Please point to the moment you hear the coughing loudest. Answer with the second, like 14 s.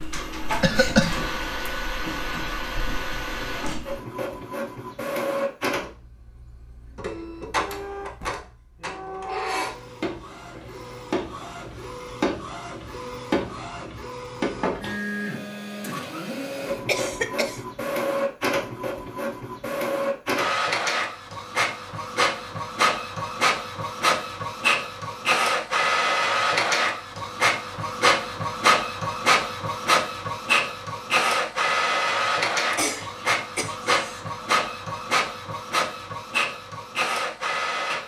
1 s.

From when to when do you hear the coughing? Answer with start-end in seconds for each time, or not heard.
0.6-1.1, 16.9-17.6, 32.7-34.4.